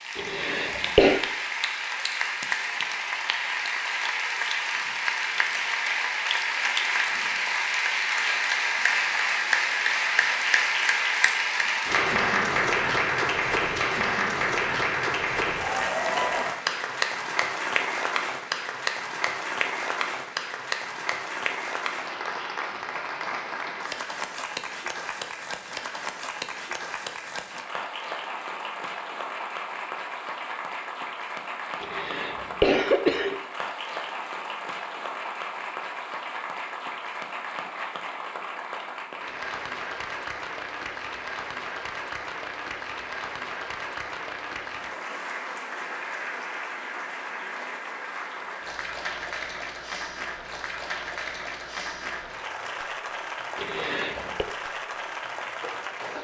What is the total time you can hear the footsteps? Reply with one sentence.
The footsteps can't be heard in this clip.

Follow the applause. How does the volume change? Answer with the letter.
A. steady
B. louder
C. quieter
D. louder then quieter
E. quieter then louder
C.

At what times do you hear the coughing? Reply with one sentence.
You can hear the coughing from 0.1 to 1.2 s, from 31.8 to 33.4 s and from 53.5 to 54.5 s.